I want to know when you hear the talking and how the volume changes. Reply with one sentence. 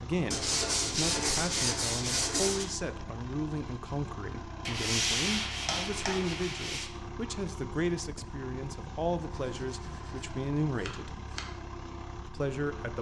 You can hear the talking from 0.0 to 11.2 s, at a steady volume; and briefly from 12.2 to 12.9 s.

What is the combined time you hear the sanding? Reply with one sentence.
The sanding can be heard for 7 seconds in total.